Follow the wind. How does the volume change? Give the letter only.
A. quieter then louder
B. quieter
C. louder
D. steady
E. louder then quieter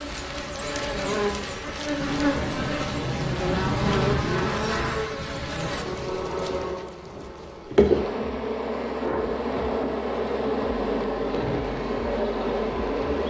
E.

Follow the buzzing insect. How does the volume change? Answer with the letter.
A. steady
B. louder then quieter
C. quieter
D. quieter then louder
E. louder
A.